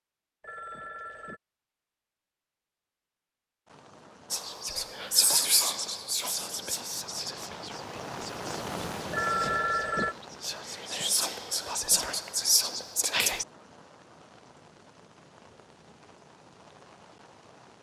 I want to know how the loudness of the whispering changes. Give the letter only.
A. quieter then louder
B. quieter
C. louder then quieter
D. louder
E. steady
A.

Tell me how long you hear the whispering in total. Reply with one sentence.
The whispering can be heard for 9 seconds in total.